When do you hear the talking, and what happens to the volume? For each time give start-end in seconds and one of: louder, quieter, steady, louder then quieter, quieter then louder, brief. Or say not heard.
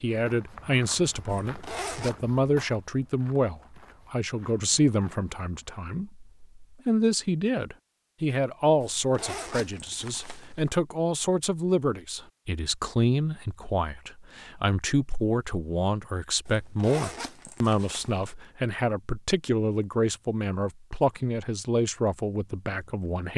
0.0-23.3 steady.